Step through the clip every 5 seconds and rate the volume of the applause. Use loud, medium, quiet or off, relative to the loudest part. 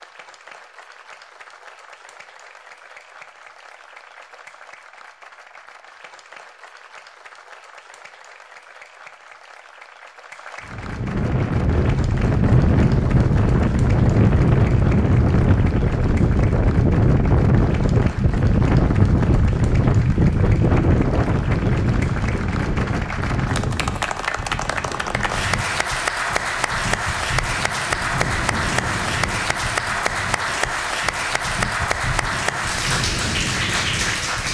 quiet, quiet, quiet, quiet, medium, loud, loud.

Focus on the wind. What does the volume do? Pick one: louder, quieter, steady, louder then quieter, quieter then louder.
quieter.